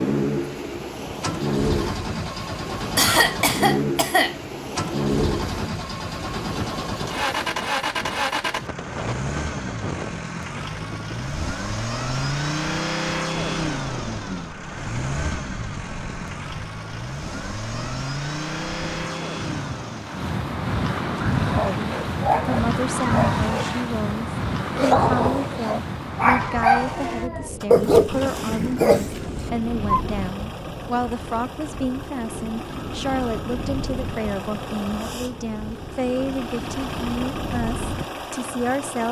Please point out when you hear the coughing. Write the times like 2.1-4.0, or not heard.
3.0-4.3.